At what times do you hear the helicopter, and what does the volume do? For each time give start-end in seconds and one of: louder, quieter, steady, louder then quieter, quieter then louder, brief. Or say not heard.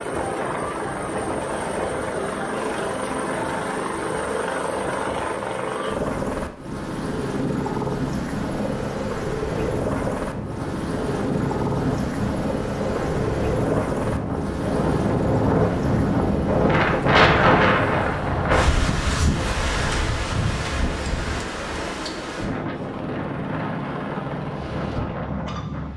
0.0-25.9 quieter.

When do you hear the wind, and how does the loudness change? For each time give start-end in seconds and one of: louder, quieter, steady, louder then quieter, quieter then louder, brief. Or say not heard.
9.4-25.9 louder then quieter.